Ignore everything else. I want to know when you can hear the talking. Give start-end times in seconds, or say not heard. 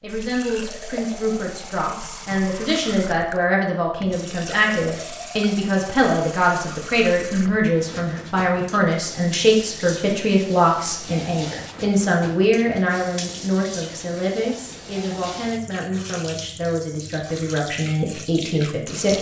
0.0-19.1.